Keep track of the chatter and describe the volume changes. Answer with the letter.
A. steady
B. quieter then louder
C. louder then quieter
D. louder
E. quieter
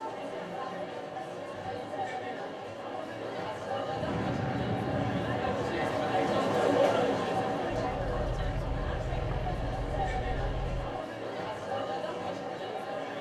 C.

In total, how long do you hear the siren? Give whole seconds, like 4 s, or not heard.
not heard.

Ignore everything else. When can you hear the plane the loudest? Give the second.
5 s.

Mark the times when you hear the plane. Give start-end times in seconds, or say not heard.
3.9-11.0.